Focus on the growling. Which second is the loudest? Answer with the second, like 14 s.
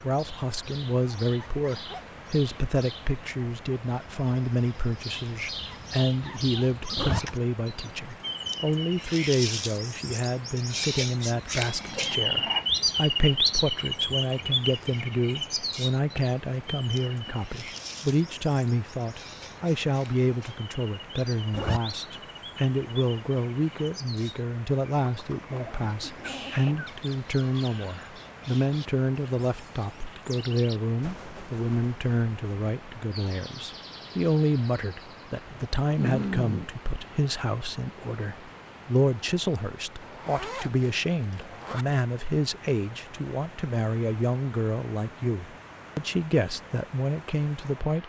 36 s.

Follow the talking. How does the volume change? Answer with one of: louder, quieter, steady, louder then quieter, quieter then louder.
steady.